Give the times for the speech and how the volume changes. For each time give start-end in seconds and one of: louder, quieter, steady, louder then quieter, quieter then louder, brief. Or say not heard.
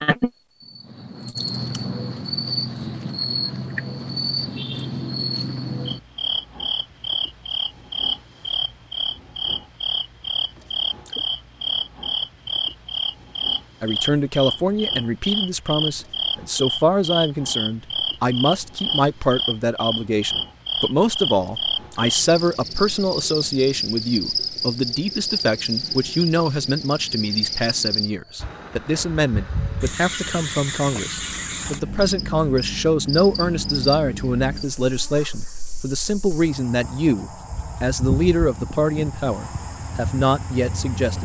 13.8-41.2 steady.